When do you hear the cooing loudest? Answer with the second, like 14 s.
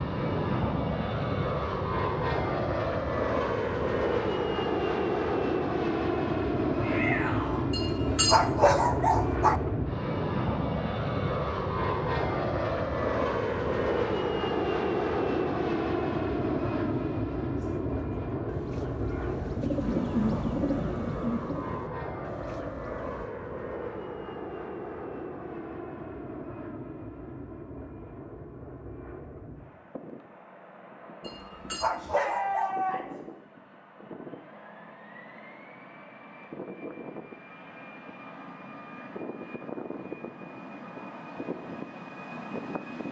20 s.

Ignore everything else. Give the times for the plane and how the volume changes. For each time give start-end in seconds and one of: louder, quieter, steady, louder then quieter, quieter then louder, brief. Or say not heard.
0.0-43.0 quieter.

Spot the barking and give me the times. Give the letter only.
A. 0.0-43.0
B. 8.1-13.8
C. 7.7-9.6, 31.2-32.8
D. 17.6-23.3
C.